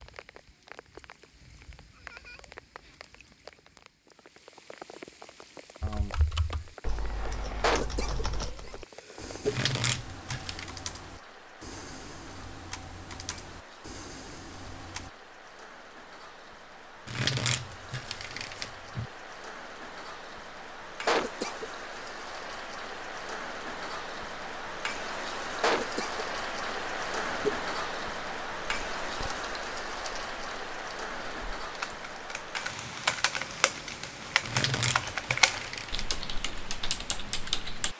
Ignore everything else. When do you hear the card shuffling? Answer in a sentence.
You can hear the card shuffling from 9.4 to 10.7 s, from 17.1 to 19.1 s and from 34.4 to 36.1 s.